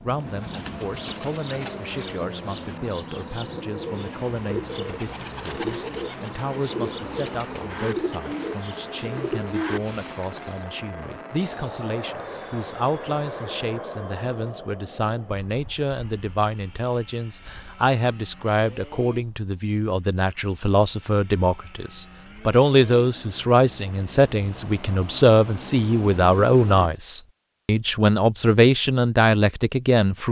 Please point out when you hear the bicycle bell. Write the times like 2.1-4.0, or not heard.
not heard.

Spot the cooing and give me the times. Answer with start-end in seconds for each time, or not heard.
0.1-10.7.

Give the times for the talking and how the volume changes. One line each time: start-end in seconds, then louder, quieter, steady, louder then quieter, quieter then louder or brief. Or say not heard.
0.0-30.2 louder.